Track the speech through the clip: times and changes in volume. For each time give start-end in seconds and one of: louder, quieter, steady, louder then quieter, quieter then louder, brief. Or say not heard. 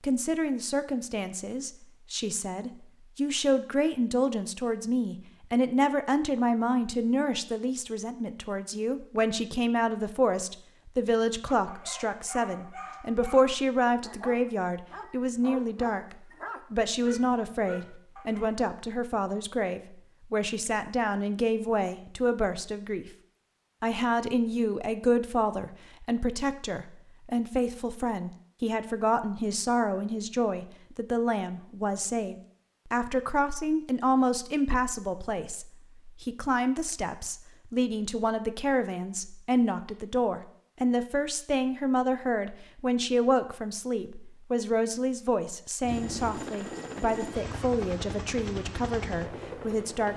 0.0-23.1 steady
23.8-50.1 steady.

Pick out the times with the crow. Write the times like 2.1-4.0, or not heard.
not heard.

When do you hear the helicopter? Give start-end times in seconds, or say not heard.
45.8-50.1.